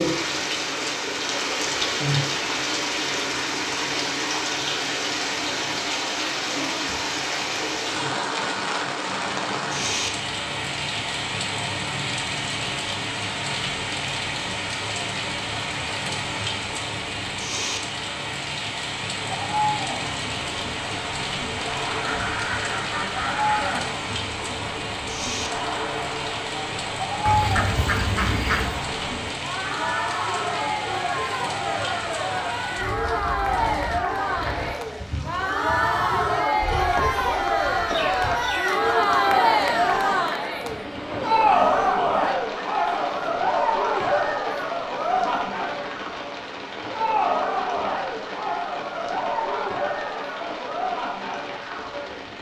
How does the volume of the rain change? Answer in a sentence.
The loudness of the rain goes down.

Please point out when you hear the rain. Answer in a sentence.
You can hear the rain from 0.0 to 52.3 s.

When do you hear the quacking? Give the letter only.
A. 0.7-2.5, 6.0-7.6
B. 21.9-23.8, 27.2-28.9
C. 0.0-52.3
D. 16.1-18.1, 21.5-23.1
B.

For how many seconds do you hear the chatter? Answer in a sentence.
You can hear the chatter for 33 seconds altogether.